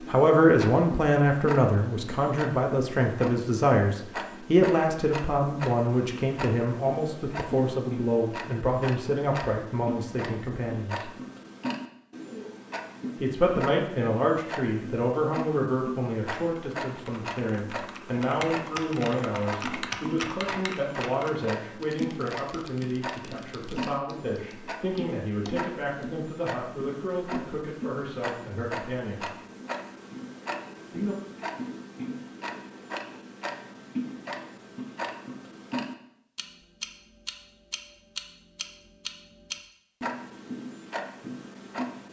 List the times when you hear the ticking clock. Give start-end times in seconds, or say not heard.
0.0-42.0.